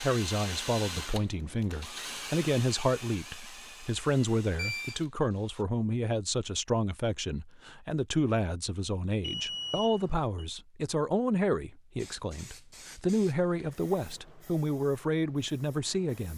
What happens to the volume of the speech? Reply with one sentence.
The volume of the speech stays about the same.